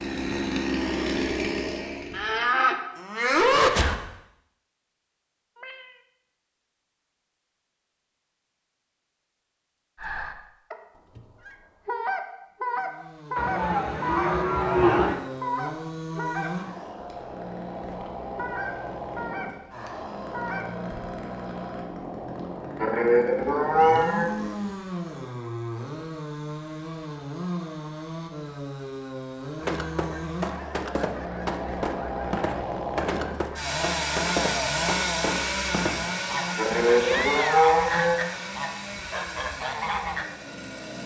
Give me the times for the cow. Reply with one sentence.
You can hear the cow from 2.1 to 4.0 s, from 13.3 to 15.2 s, from 22.8 to 24.3 s and from 36.5 to 38.2 s.